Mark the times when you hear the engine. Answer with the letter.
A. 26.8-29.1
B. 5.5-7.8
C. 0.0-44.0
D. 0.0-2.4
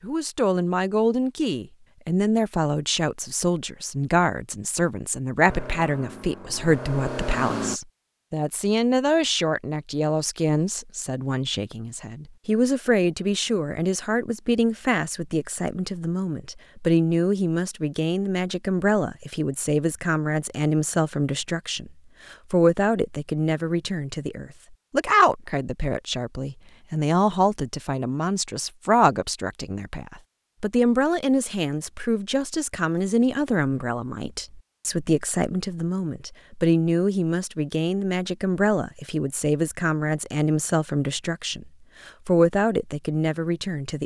B.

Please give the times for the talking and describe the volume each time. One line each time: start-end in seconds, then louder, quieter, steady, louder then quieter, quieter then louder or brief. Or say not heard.
0.0-44.0 steady.